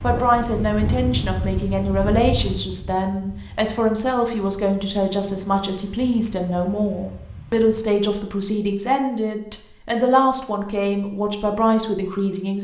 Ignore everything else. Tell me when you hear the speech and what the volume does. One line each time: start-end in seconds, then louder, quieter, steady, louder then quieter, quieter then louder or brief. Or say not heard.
0.0-12.5 steady.